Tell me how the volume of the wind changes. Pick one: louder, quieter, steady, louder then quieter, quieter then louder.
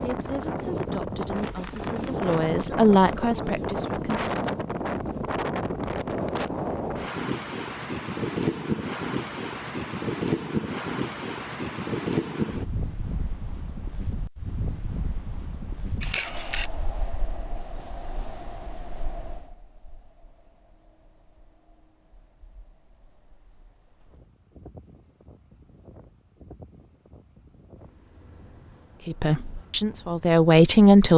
quieter.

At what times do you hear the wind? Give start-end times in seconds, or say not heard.
0.0-30.9.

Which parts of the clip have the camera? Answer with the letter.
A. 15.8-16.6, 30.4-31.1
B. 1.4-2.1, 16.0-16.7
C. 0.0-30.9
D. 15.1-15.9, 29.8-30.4
B.